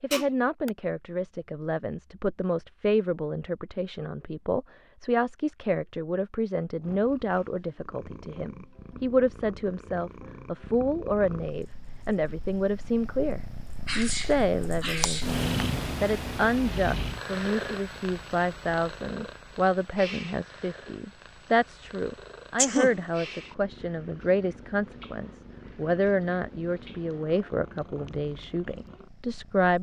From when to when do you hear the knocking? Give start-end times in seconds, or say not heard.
not heard.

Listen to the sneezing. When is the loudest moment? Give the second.
23 s.